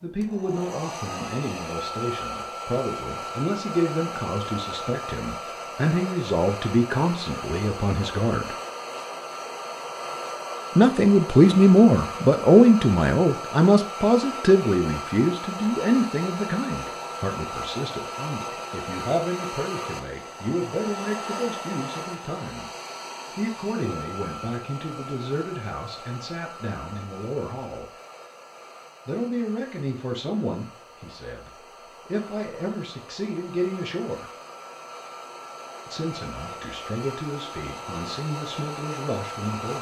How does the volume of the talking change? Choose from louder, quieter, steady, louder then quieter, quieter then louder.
louder then quieter.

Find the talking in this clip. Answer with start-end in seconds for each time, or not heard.
0.0-8.6, 10.8-22.6, 23.4-27.9, 29.1-34.2, 35.9-39.7.